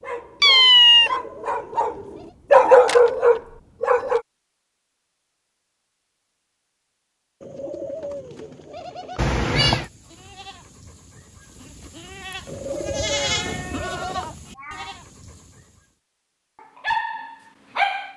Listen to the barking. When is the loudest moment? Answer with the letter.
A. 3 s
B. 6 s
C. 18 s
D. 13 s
A.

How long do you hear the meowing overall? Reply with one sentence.
You can hear the meowing for 3 seconds altogether.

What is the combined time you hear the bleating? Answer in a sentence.
The bleating can be heard for 6 seconds in total.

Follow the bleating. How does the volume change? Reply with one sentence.
The loudness of the bleating goes up, then down.